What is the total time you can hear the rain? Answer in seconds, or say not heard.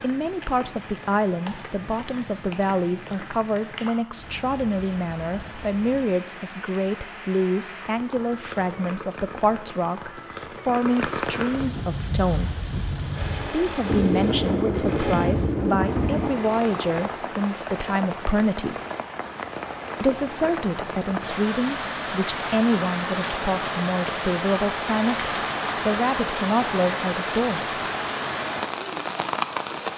30 s.